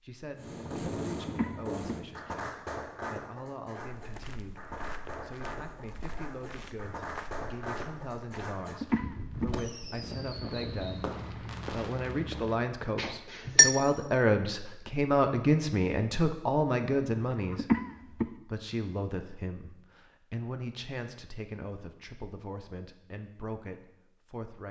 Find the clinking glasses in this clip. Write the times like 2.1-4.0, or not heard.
12.9-13.8.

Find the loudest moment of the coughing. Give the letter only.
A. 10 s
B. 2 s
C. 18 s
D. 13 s
C.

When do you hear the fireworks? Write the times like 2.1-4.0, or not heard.
0.3-12.2.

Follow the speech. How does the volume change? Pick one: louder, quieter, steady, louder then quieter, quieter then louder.
louder then quieter.